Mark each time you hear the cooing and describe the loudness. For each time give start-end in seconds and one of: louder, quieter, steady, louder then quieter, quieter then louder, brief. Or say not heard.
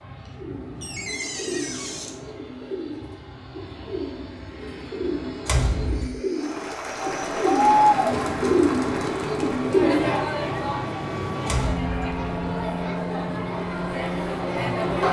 0.3-10.6 louder.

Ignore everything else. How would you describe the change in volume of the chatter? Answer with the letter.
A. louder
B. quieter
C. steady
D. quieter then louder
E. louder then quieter
B.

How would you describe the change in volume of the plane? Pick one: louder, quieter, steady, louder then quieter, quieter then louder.
louder.